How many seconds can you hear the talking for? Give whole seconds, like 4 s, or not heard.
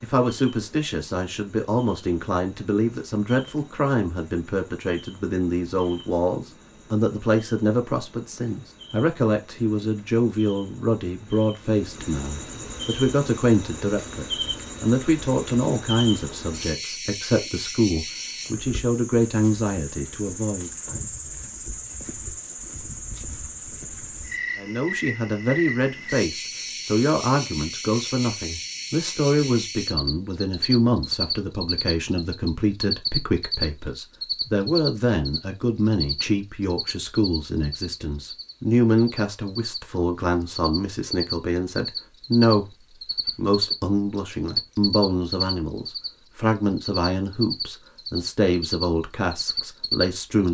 46 s.